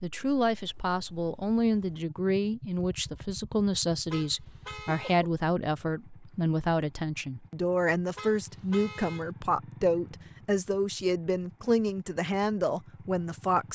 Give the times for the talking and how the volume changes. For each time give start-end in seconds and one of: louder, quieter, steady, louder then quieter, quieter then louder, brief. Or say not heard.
0.0-13.7 steady.